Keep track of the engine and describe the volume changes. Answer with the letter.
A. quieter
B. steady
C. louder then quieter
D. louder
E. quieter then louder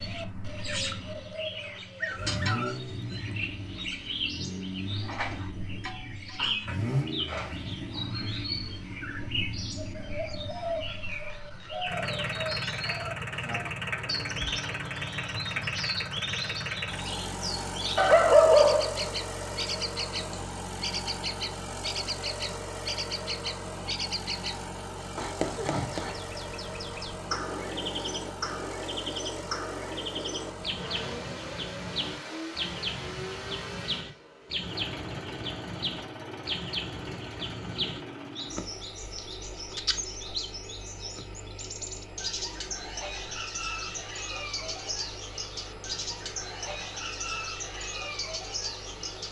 A.